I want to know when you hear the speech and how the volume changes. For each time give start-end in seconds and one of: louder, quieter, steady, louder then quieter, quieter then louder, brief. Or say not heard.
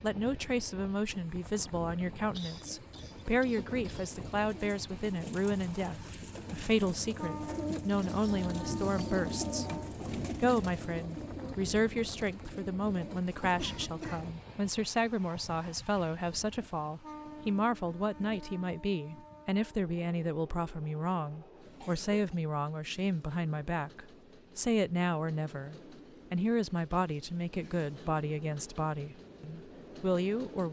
0.0-30.6 steady.